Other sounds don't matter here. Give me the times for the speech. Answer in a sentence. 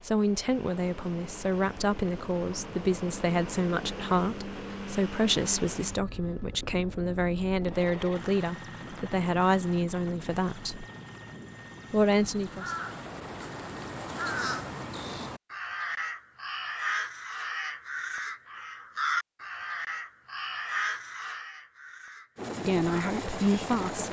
You can hear the speech from 0.0 to 10.8 s, from 11.9 to 12.7 s and from 22.6 to 24.0 s.